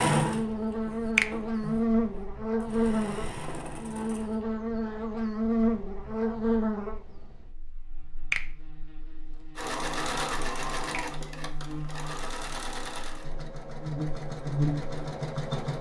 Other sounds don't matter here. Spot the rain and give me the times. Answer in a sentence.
The rain can't be heard in this clip.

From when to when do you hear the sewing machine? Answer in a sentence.
The sewing machine can be heard from 0.0 to 4.4 s and from 9.6 to 15.7 s.